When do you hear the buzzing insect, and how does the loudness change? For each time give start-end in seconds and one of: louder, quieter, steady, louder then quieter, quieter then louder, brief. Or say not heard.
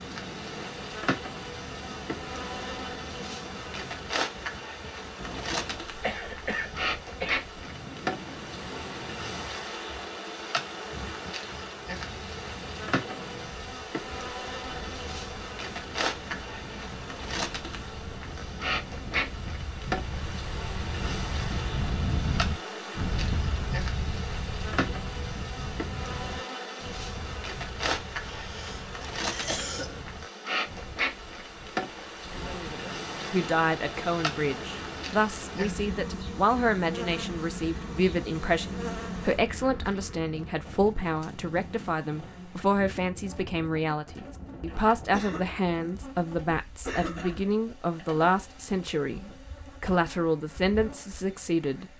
0.0-51.9 quieter.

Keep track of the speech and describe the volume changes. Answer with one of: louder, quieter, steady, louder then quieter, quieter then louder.
steady.